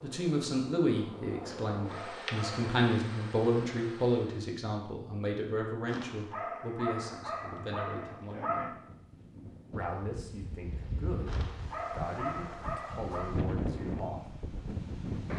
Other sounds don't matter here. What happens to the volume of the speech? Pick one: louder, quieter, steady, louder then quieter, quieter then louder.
quieter.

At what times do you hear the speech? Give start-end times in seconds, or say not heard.
0.0-8.8, 9.7-14.3.